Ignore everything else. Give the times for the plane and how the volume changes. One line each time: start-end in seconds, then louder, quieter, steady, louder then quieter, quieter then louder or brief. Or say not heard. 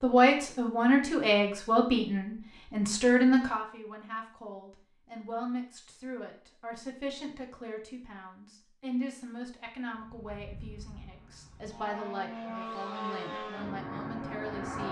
9.9-14.8 louder.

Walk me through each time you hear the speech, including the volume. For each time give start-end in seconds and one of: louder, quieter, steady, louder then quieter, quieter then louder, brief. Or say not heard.
0.0-14.8 quieter.